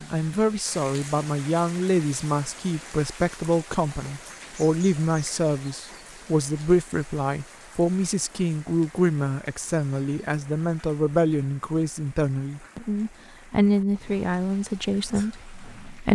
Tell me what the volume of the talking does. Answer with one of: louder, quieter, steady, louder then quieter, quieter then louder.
steady.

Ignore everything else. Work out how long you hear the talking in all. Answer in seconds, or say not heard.
16 s.